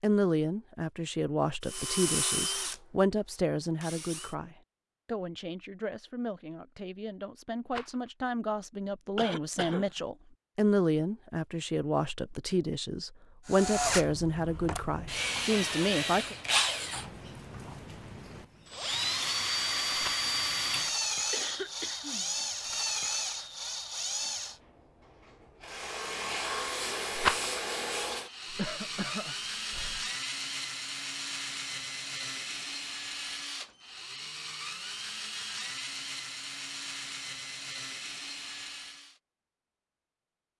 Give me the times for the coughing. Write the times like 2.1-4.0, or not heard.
9.2-9.9, 21.3-22.3, 28.4-30.1.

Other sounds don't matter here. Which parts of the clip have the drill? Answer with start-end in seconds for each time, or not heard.
1.6-2.8, 3.8-4.3, 13.4-39.2.